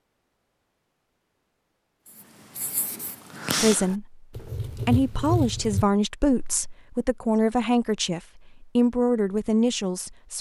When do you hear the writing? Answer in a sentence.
The writing can be heard from 2.0 to 6.7 s.